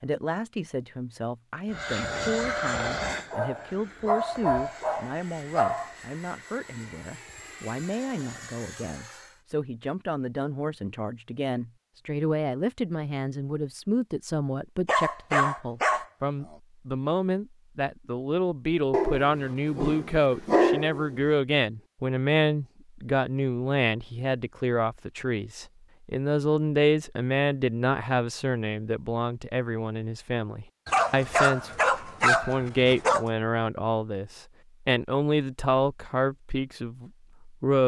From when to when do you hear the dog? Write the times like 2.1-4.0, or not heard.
3.3-5.9, 14.8-16.1, 18.9-21.2, 30.9-33.2.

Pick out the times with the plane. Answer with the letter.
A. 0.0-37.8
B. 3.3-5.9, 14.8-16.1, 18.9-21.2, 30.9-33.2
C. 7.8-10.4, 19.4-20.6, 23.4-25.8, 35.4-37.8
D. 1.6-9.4
D.